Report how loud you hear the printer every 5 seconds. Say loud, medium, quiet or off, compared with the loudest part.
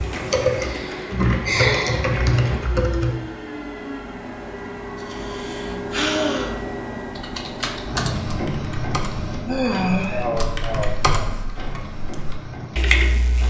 loud, loud, medium.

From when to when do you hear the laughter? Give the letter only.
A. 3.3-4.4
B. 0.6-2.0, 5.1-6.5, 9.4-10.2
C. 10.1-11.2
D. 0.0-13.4
C.